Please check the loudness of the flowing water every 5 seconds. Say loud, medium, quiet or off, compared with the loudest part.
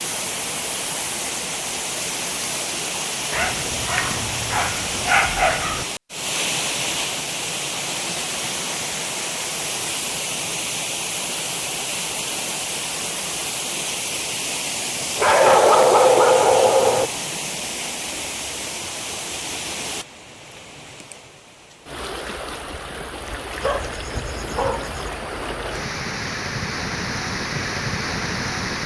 loud, loud, loud, loud, medium, loud.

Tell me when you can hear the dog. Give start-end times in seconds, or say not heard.
3.3-5.8, 15.2-17.1, 23.6-25.1.